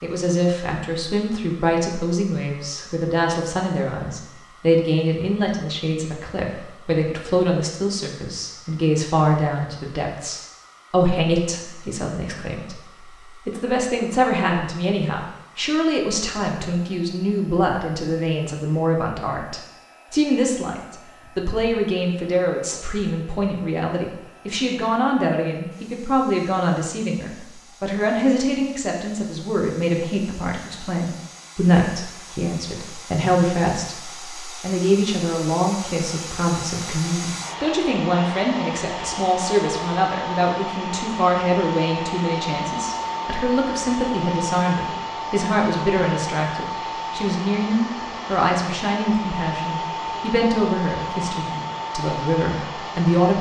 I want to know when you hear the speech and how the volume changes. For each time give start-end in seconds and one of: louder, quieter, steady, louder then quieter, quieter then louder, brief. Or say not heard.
0.0-53.3 steady.